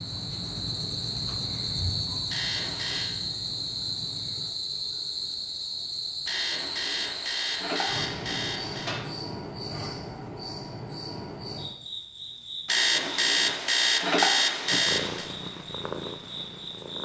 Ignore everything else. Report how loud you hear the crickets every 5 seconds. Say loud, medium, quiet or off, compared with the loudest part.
loud, loud, medium, medium.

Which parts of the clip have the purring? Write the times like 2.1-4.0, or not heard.
0.0-4.5, 14.8-16.9.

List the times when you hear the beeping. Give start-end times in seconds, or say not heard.
2.3-3.1, 6.2-9.1, 12.7-15.3.